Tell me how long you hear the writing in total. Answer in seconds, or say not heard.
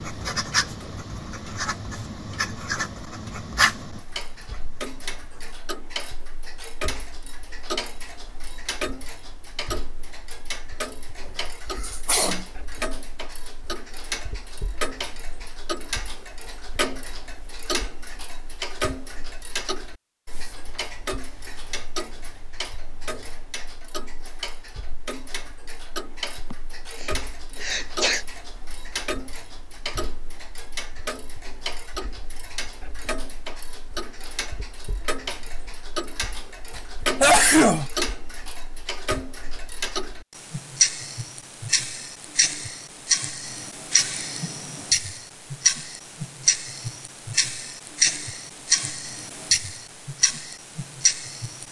6 s.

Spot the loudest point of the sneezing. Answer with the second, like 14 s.
37 s.